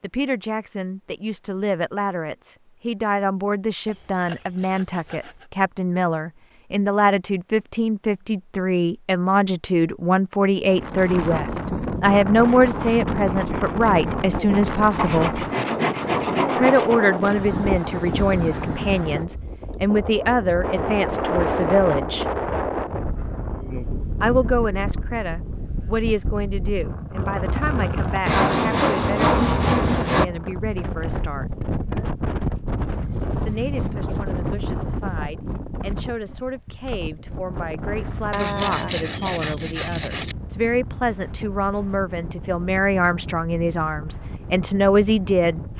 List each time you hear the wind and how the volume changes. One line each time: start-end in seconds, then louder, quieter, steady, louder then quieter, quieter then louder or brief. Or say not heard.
10.7-45.7 quieter.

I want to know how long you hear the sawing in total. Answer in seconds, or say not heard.
8 s.